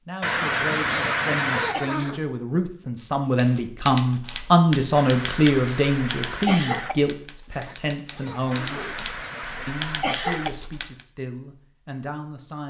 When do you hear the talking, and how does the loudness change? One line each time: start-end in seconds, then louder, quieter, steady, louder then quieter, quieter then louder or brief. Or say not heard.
0.1-8.8 louder then quieter
9.7-12.6 brief.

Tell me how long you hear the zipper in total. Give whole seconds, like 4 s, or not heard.
3 s.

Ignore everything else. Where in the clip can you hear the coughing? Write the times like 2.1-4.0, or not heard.
0.2-1.8, 5.0-7.0, 8.5-10.5.